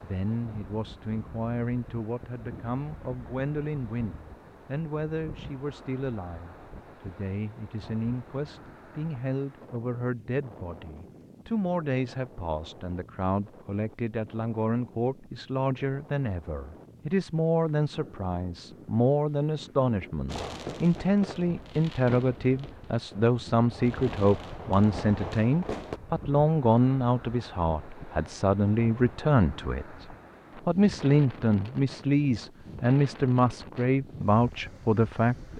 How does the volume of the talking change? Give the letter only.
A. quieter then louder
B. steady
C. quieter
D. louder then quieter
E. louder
E.